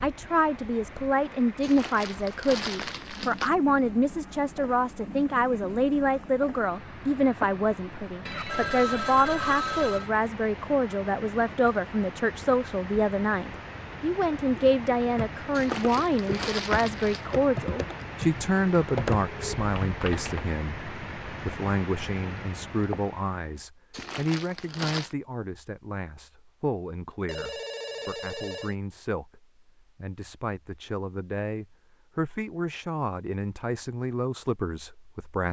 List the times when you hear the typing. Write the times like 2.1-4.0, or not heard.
14.6-20.4.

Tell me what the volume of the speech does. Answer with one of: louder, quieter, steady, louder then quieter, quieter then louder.
quieter.